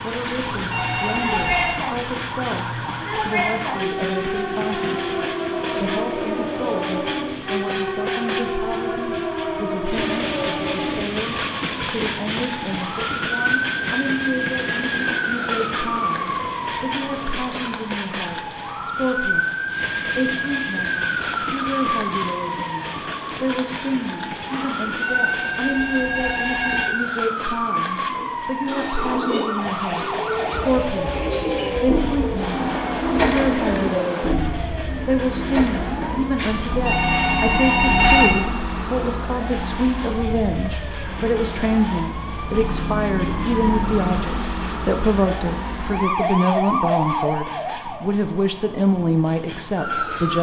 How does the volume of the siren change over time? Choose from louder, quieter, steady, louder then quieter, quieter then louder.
steady.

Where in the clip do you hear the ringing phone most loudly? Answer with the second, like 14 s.
38 s.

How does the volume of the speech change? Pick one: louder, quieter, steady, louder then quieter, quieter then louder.
louder.